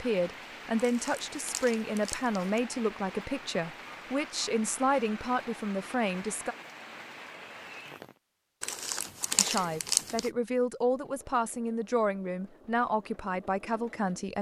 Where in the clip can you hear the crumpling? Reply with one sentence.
The crumpling can be heard from 0.8 to 2.4 s and from 8.6 to 10.3 s.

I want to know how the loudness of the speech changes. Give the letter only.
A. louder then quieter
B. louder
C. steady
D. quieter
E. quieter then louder
C.